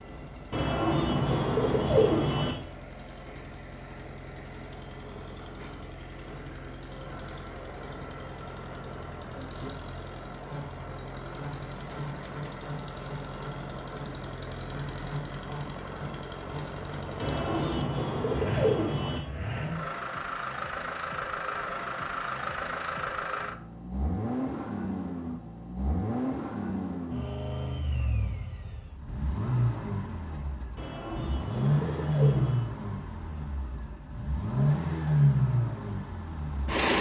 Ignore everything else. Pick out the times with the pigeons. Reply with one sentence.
You can hear the pigeons from 0.5 to 2.5 s, from 17.1 to 19.2 s and from 30.8 to 32.6 s.